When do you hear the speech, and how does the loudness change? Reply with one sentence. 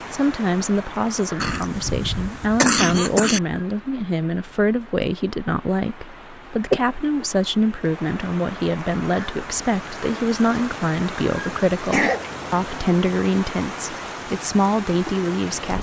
You can hear the speech from 0.1 to 15.7 s, at a steady volume.